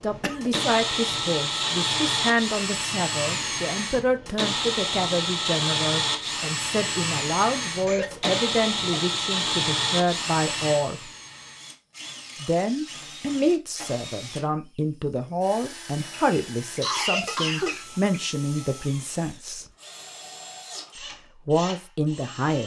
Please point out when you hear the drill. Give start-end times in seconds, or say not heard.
0.0-22.6.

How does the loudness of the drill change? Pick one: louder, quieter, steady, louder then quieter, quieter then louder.
quieter.